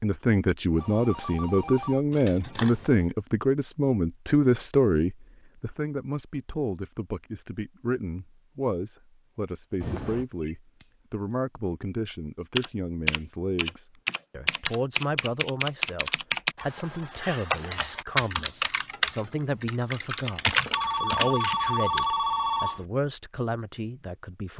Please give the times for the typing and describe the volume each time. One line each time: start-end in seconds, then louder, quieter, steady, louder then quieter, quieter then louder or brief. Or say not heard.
12.6-22.1 steady.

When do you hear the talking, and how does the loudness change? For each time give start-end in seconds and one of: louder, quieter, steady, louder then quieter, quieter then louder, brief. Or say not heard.
0.0-24.5 quieter.